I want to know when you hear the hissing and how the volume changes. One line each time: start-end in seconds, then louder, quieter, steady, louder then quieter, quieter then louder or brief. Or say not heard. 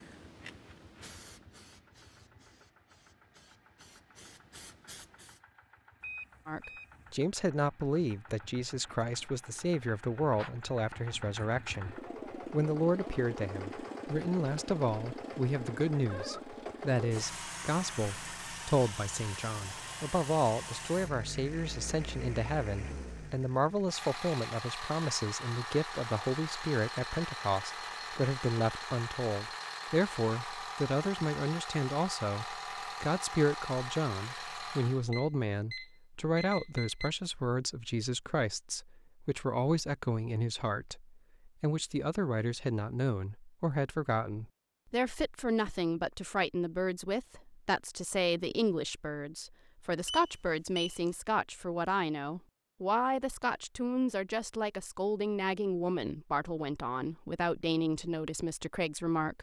0.0-5.4 quieter then louder.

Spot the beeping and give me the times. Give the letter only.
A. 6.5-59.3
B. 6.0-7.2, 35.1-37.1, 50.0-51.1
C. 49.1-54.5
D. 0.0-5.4
B.